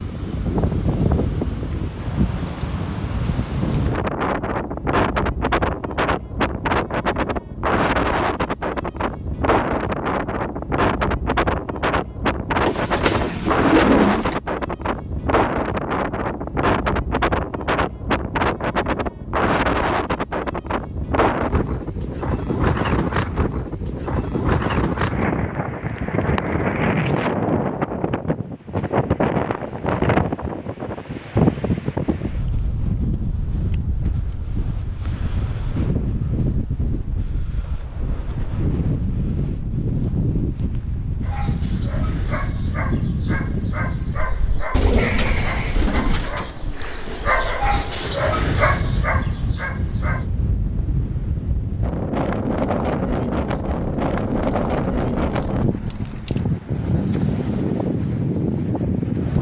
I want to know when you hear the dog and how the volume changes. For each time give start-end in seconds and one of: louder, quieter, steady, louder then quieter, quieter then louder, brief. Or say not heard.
41.2-50.2 louder.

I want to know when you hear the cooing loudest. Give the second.
14 s.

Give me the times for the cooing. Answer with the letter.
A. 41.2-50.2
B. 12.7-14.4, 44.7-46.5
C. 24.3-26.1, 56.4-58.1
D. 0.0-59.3
B.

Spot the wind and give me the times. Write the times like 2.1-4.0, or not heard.
0.0-59.3.